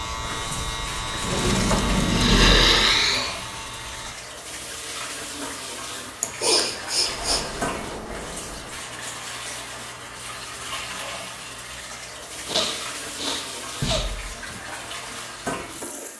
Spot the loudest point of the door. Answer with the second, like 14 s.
2 s.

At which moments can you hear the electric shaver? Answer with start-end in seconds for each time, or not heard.
0.0-4.2.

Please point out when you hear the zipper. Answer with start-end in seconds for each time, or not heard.
not heard.